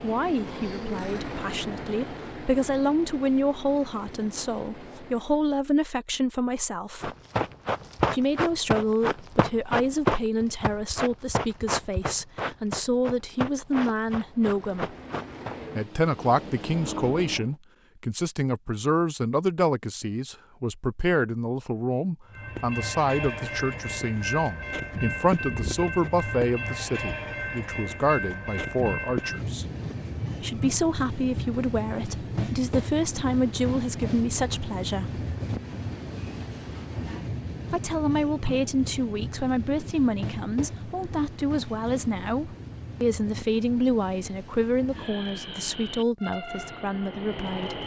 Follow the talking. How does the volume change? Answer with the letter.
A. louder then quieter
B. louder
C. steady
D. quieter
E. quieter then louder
C.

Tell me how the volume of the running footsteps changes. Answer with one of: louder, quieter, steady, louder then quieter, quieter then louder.
quieter.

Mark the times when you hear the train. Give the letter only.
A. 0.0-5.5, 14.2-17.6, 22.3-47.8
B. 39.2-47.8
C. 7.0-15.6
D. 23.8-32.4
A.